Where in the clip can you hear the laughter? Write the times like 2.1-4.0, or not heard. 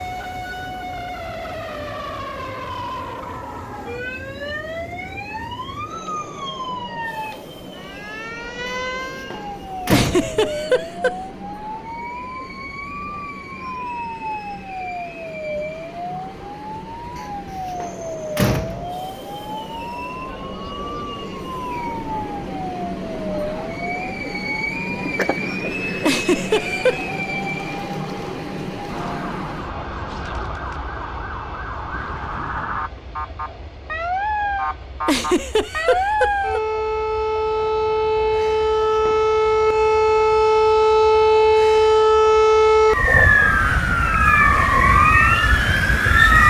9.9-11.2, 26.1-27.2, 35.0-36.6.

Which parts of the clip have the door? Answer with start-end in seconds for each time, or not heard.
8.7-10.6, 17.1-18.9, 38.4-39.3.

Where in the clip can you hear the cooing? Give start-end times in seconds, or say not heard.
not heard.